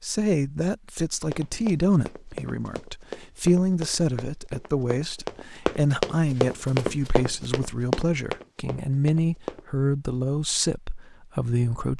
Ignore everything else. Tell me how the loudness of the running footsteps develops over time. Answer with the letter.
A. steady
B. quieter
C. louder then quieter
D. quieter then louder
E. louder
E.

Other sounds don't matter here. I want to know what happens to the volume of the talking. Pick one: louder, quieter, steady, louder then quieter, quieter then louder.
steady.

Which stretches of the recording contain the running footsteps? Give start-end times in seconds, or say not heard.
1.2-9.7.